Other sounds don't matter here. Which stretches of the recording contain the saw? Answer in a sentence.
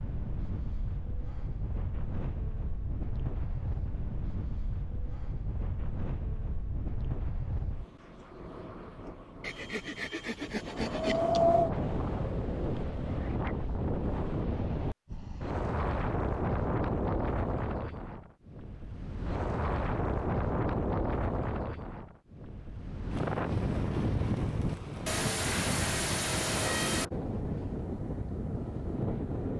The saw can be heard from 9.4 to 11.4 s and from 25.1 to 27.1 s.